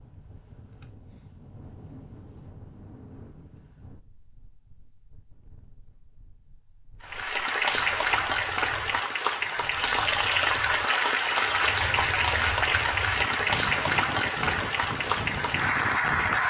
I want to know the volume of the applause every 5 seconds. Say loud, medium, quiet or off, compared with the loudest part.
off, loud, loud, loud.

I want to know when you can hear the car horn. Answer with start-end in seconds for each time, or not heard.
not heard.